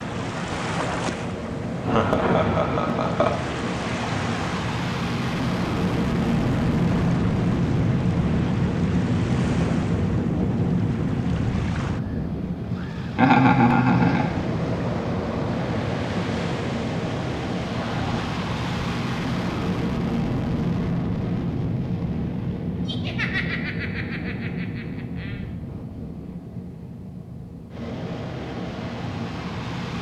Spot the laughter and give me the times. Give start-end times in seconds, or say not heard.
1.8-3.4, 13.2-14.3, 22.9-25.4.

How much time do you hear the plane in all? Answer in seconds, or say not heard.
30 s.